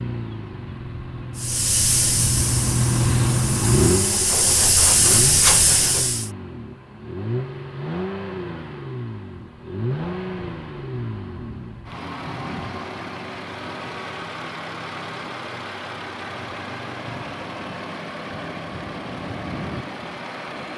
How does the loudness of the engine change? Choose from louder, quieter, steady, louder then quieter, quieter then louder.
quieter.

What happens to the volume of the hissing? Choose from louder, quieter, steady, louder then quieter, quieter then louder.
quieter then louder.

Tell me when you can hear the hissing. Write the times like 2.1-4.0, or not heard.
1.4-6.3.